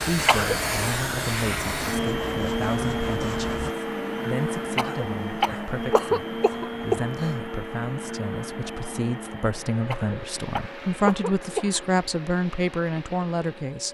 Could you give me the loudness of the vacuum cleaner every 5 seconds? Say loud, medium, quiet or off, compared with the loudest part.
loud, medium, quiet.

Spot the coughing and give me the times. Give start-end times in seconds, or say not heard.
0.2-0.7, 4.8-7.3, 9.9-11.8.